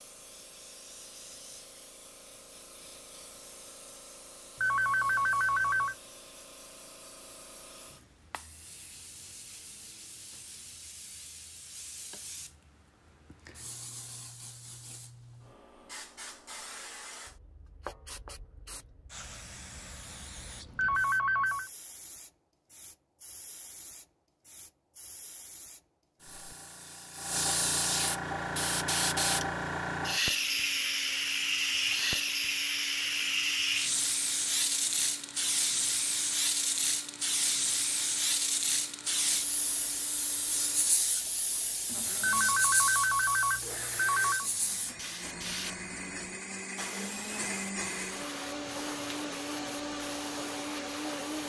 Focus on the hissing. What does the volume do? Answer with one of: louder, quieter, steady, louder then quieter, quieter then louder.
louder then quieter.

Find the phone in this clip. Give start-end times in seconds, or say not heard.
4.6-6.0, 20.8-21.7, 42.2-44.5.